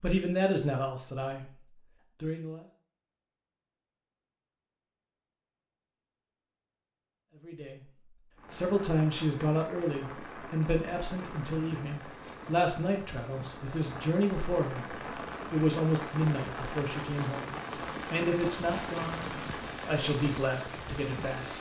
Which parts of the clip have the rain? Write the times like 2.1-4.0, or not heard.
8.3-21.5.